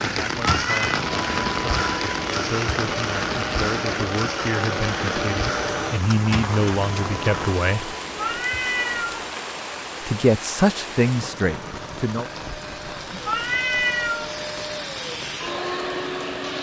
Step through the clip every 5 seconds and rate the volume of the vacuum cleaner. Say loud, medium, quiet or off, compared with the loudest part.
loud, loud, medium, loud.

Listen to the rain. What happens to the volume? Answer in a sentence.
The volume of the rain goes down.